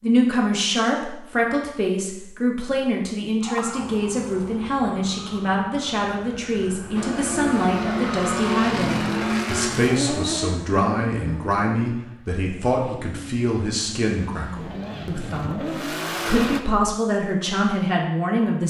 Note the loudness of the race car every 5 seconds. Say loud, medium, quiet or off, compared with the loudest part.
off, loud, medium, loud.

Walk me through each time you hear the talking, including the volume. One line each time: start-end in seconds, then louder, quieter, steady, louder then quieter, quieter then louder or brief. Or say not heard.
0.0-18.6 steady.